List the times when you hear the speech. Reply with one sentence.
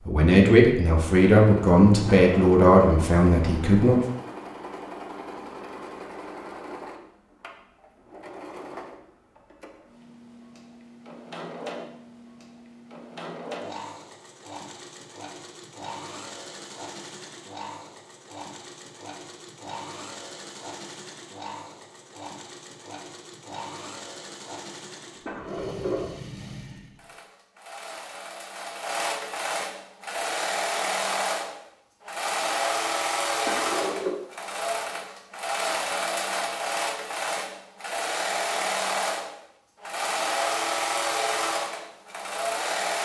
The speech can be heard from 0.1 to 4.0 s.